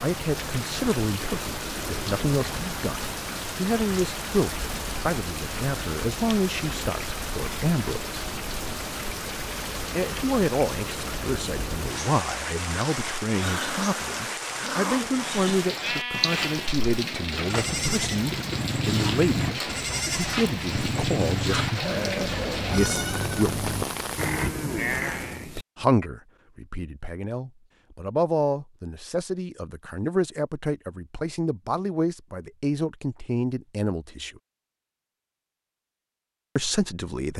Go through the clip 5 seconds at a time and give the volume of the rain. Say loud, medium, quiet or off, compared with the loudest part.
loud, loud, loud, loud, loud, off, off, off.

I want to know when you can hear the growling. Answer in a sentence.
The growling can be heard from 13.4 to 15.2 s.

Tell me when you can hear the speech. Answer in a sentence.
The speech can be heard from 0.0 to 8.2 s, from 9.9 to 23.6 s, from 25.8 to 34.4 s and from 36.5 to 37.3 s.